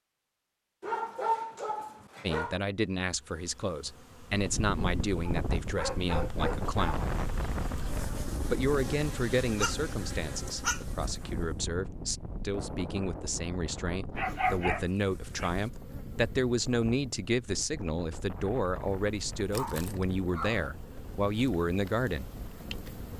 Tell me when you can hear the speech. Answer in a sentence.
You can hear the speech from 2.2 to 7.0 s and from 8.5 to 22.3 s.